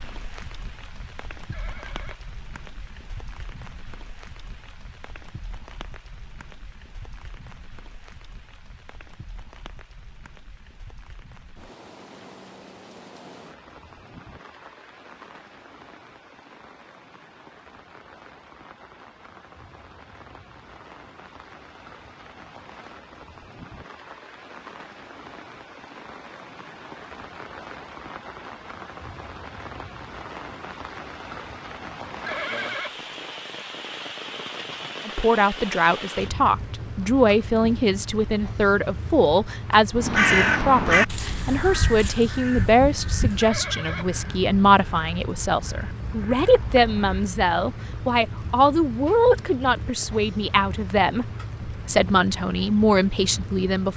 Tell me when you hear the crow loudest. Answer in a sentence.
The volume of the crow peaks at 40 seconds.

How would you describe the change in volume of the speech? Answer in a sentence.
The volume of the speech stays about the same.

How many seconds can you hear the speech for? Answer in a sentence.
The speech can be heard for 19 seconds in total.